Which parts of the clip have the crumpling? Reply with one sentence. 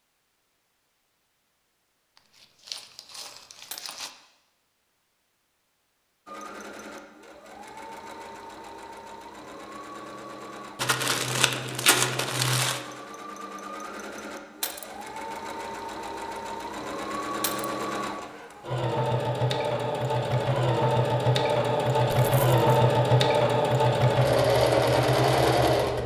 You can hear the crumpling from 2.1 to 4.1 s, from 10.8 to 12.8 s and from 22.1 to 22.6 s.